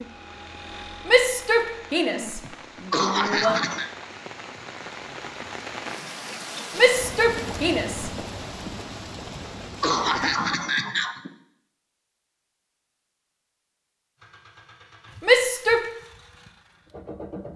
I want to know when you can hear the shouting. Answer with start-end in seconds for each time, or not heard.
1.1-3.6, 6.8-8.1, 15.2-15.9.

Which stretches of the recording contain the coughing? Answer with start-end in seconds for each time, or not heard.
2.5-3.9, 9.3-11.3.